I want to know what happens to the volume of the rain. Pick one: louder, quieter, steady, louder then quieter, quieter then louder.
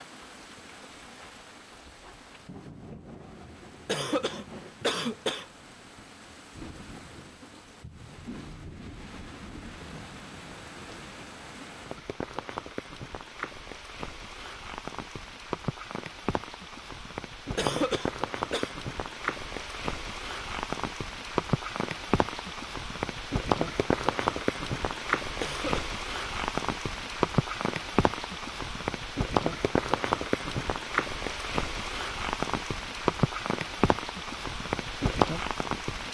louder.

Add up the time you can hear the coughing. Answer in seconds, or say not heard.
3 s.